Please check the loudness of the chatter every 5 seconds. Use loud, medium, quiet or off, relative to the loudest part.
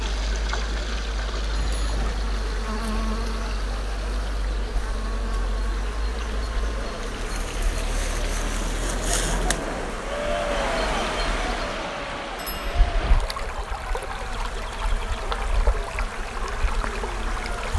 medium, loud, loud, medium.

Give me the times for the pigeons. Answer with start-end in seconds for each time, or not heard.
not heard.